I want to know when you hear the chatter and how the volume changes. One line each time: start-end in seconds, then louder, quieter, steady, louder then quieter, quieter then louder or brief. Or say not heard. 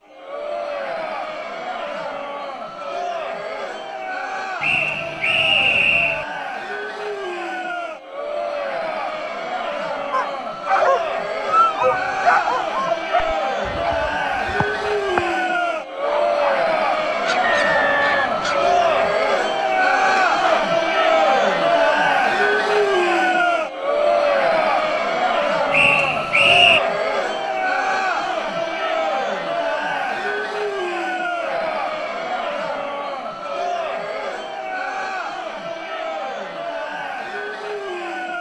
0.0-38.3 louder then quieter.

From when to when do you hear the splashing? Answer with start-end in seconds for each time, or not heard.
not heard.